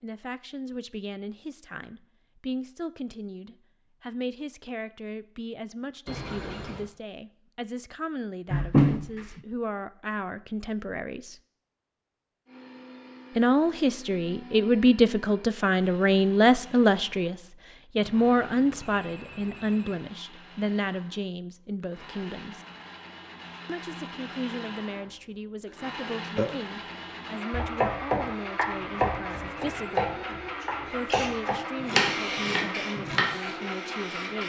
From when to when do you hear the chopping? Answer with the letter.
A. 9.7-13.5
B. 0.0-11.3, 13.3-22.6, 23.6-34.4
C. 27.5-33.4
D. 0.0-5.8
C.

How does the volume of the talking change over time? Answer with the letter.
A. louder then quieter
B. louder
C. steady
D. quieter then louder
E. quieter
A.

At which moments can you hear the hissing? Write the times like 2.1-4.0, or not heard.
30.6-34.4.